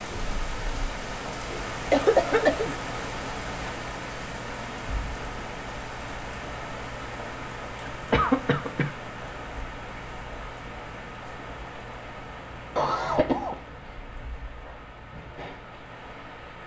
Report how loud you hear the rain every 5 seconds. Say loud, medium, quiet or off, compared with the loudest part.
loud, loud, medium, medium.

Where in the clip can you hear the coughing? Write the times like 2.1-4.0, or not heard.
1.9-2.8, 8.1-8.9, 12.8-13.6.